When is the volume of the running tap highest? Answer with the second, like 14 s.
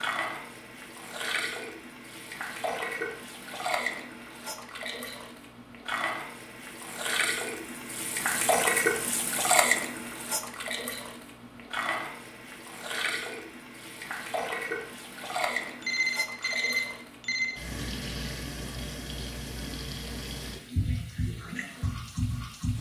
9 s.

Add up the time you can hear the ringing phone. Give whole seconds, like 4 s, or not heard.
2 s.